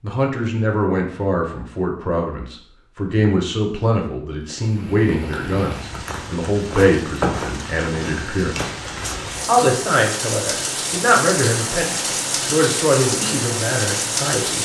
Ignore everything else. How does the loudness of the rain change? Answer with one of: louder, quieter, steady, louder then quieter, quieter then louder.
louder.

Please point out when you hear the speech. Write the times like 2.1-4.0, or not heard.
0.0-8.7, 9.4-14.6.